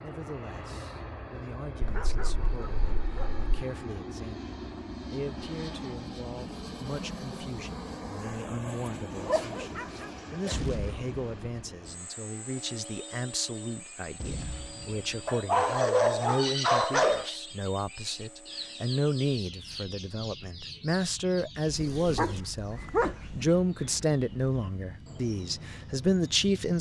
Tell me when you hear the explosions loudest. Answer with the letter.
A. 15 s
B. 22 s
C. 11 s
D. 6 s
C.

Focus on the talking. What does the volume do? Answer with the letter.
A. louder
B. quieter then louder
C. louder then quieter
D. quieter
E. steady
A.